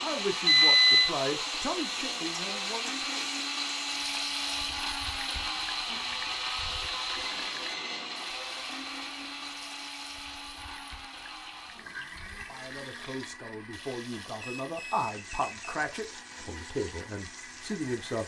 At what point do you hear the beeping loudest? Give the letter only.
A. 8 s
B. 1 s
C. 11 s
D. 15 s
B.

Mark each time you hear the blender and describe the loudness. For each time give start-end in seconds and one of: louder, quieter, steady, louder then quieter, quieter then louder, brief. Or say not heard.
0.0-18.2 quieter.